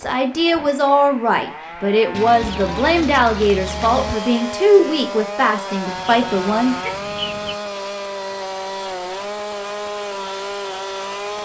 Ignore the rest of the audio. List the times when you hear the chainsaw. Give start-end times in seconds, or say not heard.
0.0-11.4.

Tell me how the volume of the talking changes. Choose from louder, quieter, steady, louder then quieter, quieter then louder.
steady.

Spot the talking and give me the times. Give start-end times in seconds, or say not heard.
0.0-6.8.